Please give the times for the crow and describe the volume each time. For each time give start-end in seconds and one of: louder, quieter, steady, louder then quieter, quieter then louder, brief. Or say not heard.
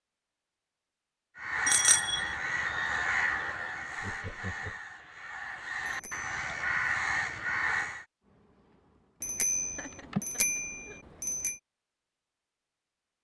1.4-8.1 quieter then louder.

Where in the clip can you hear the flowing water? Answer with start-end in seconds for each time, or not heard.
not heard.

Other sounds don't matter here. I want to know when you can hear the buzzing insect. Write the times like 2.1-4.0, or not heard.
8.2-10.8.